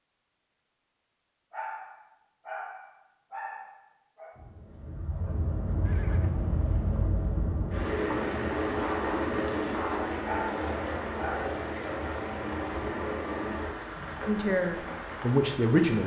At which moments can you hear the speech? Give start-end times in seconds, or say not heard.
14.2-16.0.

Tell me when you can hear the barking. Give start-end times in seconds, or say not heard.
1.5-4.3, 10.2-11.6.